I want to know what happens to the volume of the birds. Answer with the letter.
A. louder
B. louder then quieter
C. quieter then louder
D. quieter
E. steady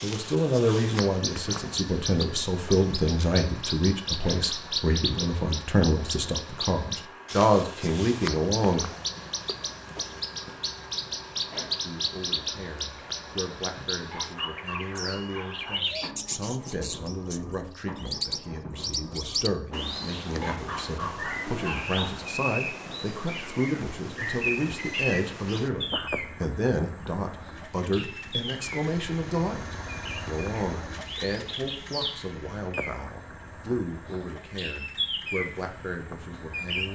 E.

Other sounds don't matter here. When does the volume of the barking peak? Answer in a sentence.
The loudest moment of the barking is at 21 seconds.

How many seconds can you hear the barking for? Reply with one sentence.
The barking can be heard for 4 seconds in total.